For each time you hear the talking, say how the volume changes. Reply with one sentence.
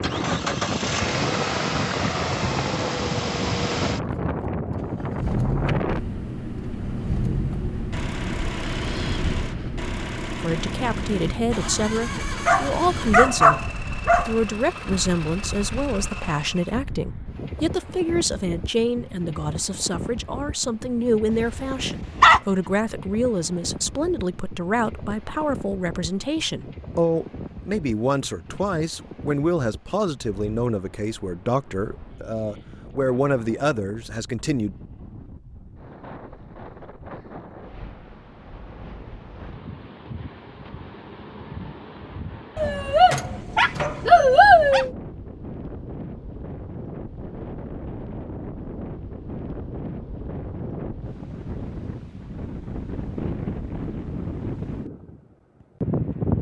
You can hear the talking from 10.4 to 34.8 s, at a steady volume.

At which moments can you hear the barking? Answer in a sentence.
The barking can be heard from 12.4 to 14.3 s, from 21.4 to 22.4 s and from 42.5 to 44.9 s.